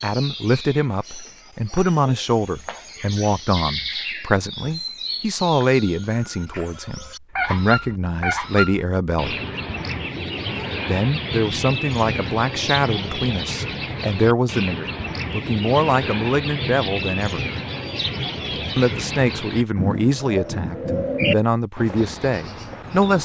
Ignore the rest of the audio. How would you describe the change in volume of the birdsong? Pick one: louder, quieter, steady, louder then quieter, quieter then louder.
louder.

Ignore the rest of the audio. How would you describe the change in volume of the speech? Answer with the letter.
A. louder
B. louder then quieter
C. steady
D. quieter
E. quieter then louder
C.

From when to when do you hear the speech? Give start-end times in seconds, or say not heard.
0.0-9.3, 10.8-17.4, 18.8-23.1.